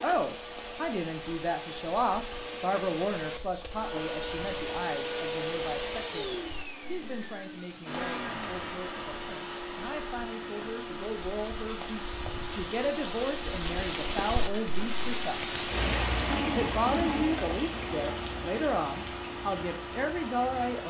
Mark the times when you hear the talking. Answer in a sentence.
You can hear the talking from 0.0 to 15.4 s and from 16.5 to 20.8 s.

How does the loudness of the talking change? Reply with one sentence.
The volume of the talking goes down, then up.